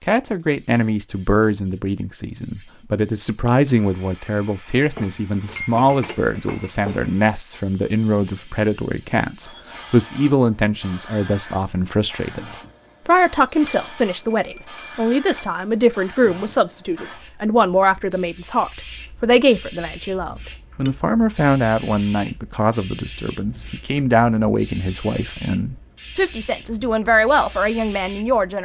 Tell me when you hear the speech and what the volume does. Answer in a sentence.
You can hear the speech from 0.0 to 28.5 s, at a steady volume.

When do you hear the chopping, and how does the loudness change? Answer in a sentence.
The chopping can't be heard in this clip.